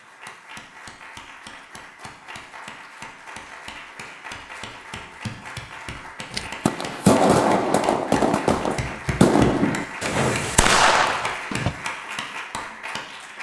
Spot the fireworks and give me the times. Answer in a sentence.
The fireworks can be heard from 6.3 to 11.8 s.